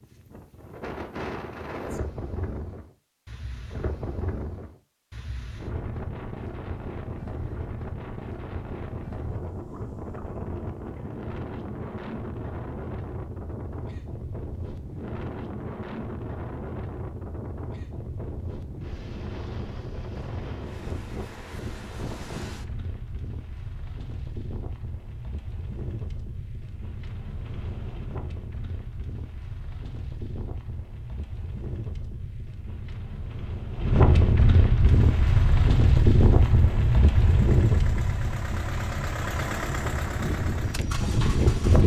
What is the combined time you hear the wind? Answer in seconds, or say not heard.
42 s.